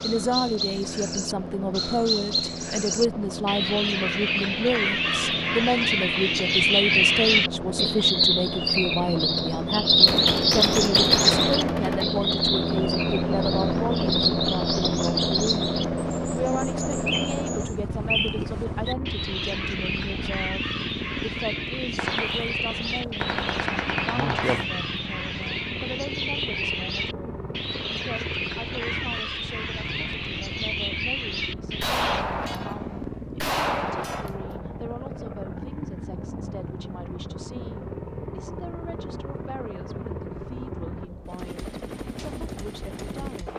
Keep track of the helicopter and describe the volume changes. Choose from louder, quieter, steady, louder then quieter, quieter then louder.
louder then quieter.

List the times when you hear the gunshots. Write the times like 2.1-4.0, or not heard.
10.1-12.1, 21.9-24.6, 31.8-34.6.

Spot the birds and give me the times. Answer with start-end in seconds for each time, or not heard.
0.0-32.2.